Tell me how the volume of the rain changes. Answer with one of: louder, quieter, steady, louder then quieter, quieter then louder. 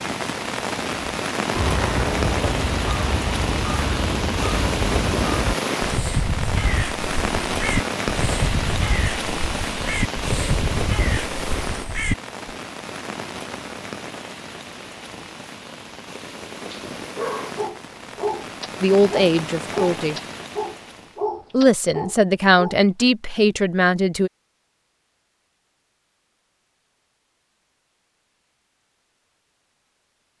quieter.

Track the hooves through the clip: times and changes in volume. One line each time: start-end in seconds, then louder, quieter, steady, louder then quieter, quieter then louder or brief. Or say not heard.
not heard.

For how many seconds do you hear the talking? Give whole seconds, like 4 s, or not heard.
4 s.